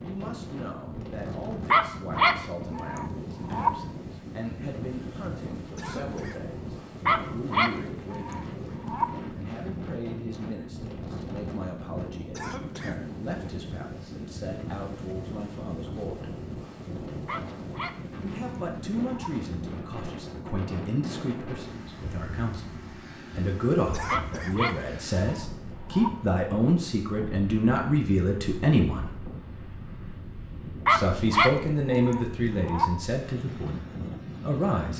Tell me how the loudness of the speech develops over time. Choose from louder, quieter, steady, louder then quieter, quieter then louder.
louder.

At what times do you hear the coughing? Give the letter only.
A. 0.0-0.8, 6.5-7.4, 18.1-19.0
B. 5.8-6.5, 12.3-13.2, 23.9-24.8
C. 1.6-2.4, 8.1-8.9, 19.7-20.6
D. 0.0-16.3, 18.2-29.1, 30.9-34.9
B.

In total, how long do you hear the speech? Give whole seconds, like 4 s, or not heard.
31 s.